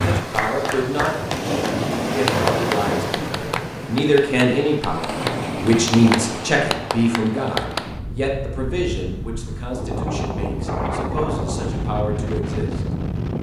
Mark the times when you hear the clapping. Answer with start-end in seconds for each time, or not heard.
0.1-8.0.